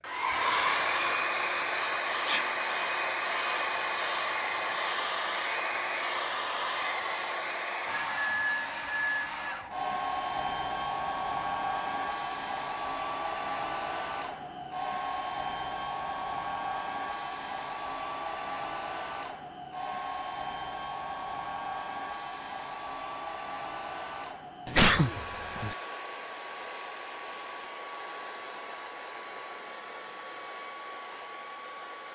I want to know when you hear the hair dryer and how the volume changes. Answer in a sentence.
You can hear the hair dryer from 0.0 to 32.0 s, getting quieter.